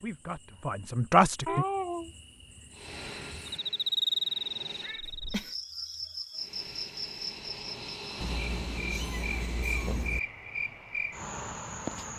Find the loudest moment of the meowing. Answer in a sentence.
The volume of the meowing peaks at 2 seconds.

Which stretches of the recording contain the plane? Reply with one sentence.
The plane can be heard from 2.7 to 5.0 s and from 6.3 to 10.0 s.